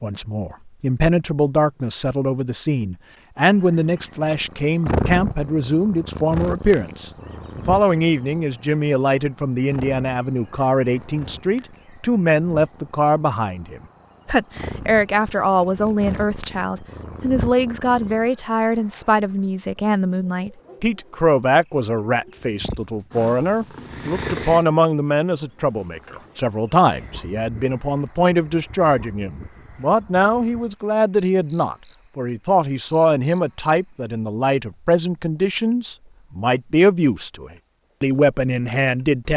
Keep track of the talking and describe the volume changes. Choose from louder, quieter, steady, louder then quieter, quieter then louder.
steady.